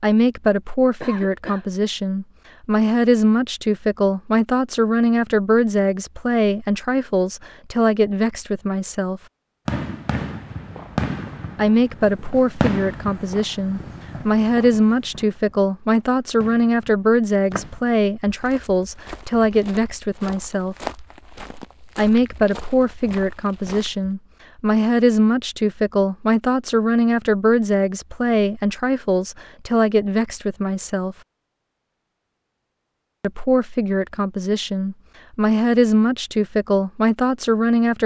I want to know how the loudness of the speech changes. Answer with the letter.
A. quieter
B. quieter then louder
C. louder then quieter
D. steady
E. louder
D.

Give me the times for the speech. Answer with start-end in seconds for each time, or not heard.
0.0-9.2, 11.6-20.8, 21.9-31.1, 33.2-38.0.